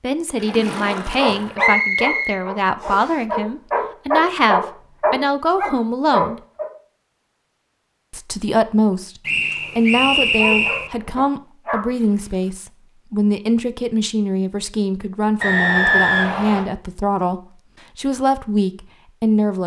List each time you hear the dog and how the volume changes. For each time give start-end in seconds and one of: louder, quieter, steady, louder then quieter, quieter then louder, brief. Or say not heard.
0.8-6.7 quieter then louder
9.4-11.8 brief.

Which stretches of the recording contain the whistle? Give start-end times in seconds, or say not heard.
1.6-3.1, 9.2-10.9, 15.4-16.6.